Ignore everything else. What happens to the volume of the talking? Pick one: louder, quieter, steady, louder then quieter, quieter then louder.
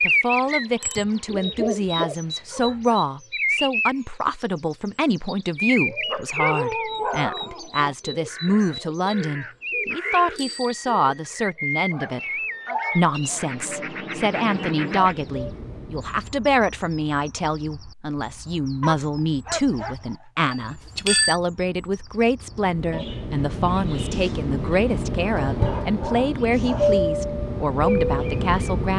steady.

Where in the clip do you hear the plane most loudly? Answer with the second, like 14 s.
27 s.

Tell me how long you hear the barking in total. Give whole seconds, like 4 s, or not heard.
8 s.